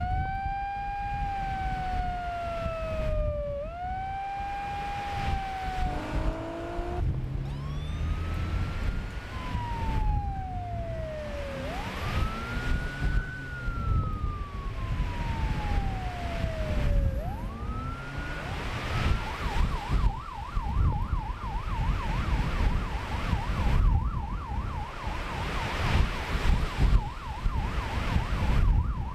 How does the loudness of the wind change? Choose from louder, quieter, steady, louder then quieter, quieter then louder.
louder.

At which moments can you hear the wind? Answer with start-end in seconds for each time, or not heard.
0.0-29.1.